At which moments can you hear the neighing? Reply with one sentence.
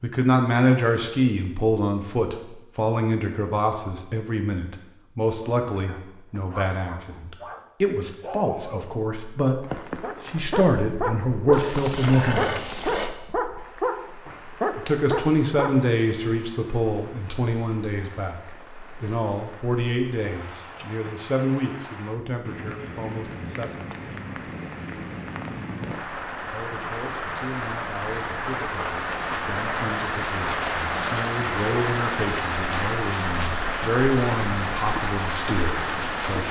You can hear the neighing from 11.5 to 13.1 s.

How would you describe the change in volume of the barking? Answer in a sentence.
The volume of the barking goes up.